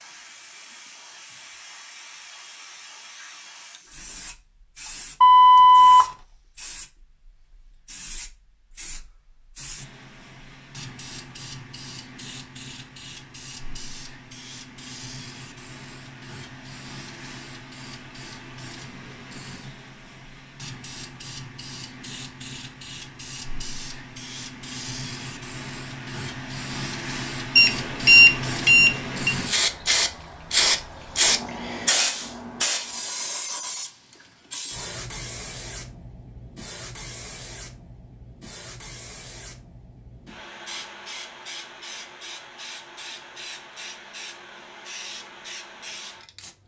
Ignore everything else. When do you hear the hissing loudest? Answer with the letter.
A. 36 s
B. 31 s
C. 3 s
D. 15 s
B.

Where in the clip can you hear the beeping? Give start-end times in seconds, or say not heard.
5.2-6.0, 27.6-29.4.